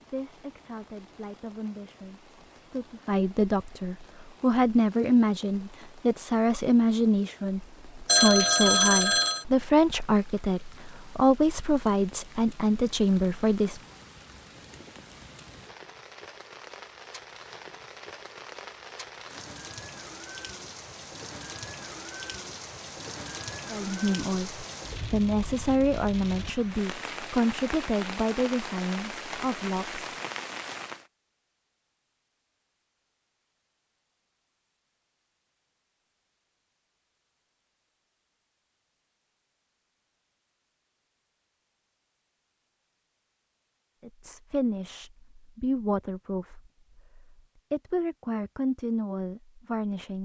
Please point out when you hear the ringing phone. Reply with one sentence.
The ringing phone can be heard from 8.1 to 9.4 s.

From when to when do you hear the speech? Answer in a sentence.
The speech can be heard from 0.1 to 13.8 s, from 23.7 to 30.1 s and from 44.0 to 50.1 s.